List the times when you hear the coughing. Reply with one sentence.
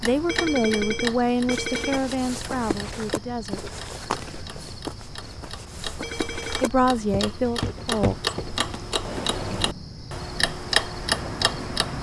You can't hear the coughing here.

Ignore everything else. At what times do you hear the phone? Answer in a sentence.
You can hear the phone from 0.2 to 2.0 s and from 6.0 to 6.7 s.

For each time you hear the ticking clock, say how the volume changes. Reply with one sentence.
You can hear the ticking clock from 0.0 to 11.9 s, getting quieter then louder.